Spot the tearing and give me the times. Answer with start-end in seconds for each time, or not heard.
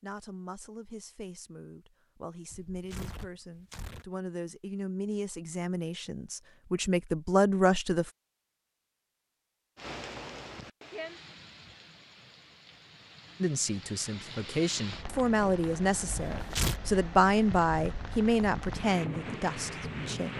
2.5-4.0, 16.4-16.8.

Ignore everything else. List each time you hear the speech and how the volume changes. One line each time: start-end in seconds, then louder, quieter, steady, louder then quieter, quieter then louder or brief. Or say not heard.
0.0-8.1 louder
13.4-20.3 louder then quieter.